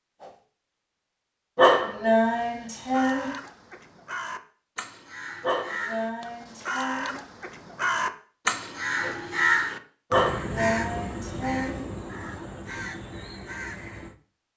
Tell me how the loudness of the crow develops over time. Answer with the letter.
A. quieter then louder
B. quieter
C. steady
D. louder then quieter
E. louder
D.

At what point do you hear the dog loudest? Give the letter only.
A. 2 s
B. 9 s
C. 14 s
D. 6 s
A.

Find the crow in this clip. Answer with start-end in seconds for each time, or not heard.
2.8-14.2.